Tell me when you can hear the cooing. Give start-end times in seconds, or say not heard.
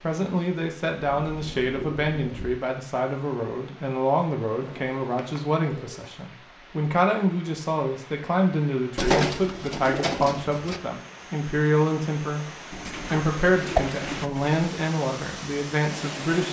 1.1-2.5, 4.6-6.2, 8.9-10.8, 12.7-14.7.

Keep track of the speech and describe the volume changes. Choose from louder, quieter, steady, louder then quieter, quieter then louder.
steady.